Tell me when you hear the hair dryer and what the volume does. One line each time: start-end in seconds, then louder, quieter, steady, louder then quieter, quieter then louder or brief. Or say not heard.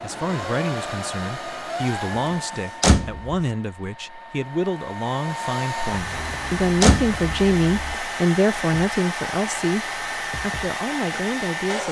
0.0-11.8 quieter then louder.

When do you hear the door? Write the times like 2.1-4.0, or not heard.
2.8-3.4, 6.8-7.2.